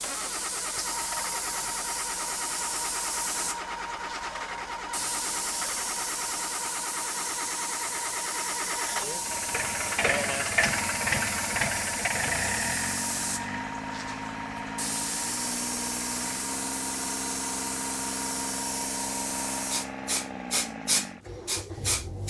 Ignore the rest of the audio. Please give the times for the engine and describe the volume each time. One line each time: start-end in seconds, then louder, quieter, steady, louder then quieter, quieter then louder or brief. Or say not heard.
0.0-22.2 louder then quieter.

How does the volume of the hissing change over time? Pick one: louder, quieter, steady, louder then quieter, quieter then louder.
steady.